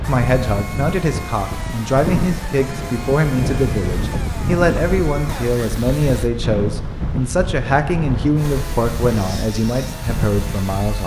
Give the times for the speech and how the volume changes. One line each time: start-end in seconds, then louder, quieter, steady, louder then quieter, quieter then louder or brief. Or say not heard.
0.1-11.0 steady.